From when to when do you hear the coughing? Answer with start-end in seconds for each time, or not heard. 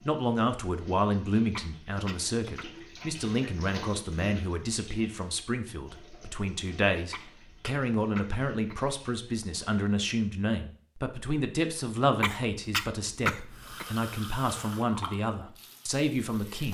1.6-2.6, 7.1-8.8, 12.2-13.8.